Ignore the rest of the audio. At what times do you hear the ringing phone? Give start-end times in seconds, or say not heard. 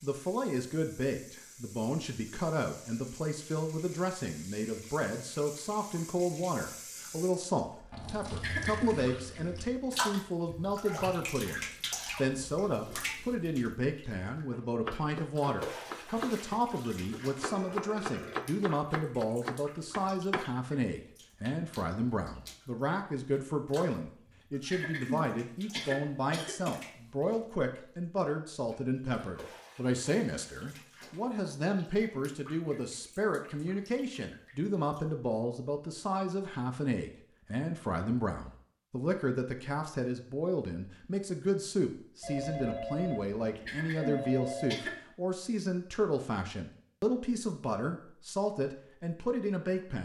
17.4-18.6, 42.2-44.8.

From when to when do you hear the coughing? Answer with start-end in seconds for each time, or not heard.
8.4-9.1, 24.7-26.8, 43.6-45.0.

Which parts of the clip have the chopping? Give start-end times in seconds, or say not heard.
14.5-20.5.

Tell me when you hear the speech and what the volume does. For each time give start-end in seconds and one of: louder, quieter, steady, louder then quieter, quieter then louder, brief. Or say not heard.
0.0-49.9 steady.